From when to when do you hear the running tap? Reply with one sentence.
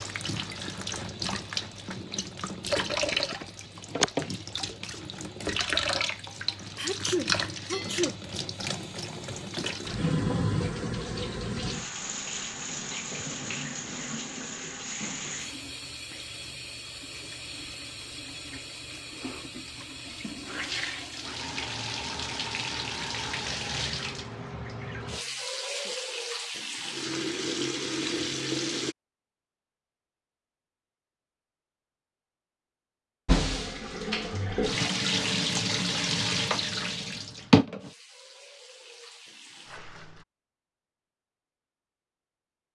You can hear the running tap from 0.0 to 28.9 s and from 33.2 to 40.2 s.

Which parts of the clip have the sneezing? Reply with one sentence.
The sneezing can be heard from 6.8 to 8.2 s and from 25.1 to 25.9 s.